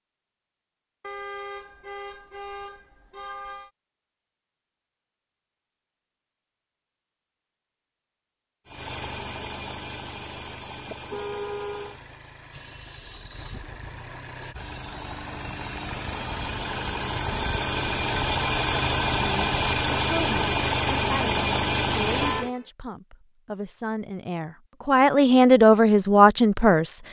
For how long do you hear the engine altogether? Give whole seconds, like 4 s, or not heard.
14 s.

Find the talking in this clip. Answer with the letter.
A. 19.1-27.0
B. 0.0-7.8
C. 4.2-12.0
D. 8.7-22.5
A.